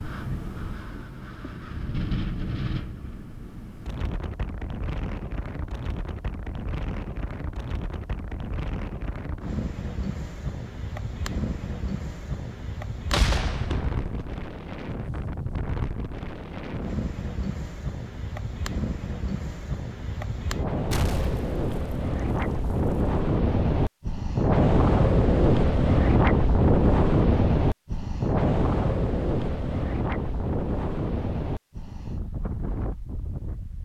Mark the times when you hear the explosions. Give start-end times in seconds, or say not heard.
13.1-14.3, 20.9-23.1.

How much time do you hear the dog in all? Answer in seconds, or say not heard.
not heard.